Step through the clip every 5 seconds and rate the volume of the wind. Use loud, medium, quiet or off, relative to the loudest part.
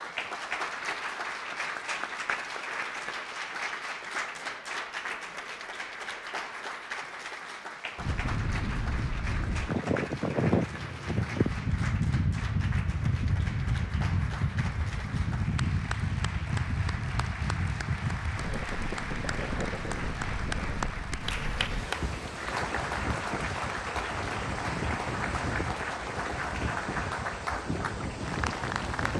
off, loud, loud, loud, medium, medium.